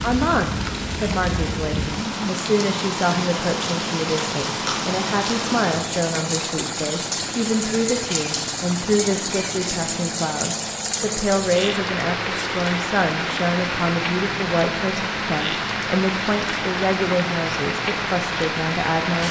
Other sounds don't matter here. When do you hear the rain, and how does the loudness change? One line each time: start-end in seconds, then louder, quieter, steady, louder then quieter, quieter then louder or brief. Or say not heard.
0.0-19.2 steady.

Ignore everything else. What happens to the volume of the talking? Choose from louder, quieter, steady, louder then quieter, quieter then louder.
steady.